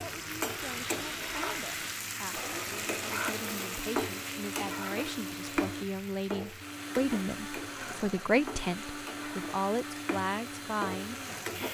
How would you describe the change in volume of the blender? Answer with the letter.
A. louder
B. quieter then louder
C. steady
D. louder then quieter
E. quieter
C.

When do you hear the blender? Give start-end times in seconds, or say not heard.
0.0-11.6.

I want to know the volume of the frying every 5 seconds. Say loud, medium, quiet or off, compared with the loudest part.
loud, medium, loud.